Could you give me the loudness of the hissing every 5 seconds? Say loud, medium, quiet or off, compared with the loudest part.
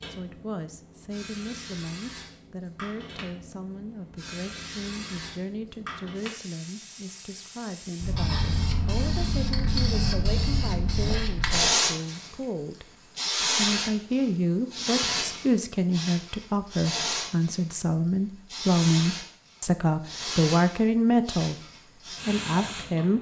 quiet, medium, loud, medium, medium.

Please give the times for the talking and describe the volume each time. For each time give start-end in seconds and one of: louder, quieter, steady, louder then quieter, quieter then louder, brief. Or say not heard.
0.0-12.8 steady
13.6-23.1 steady.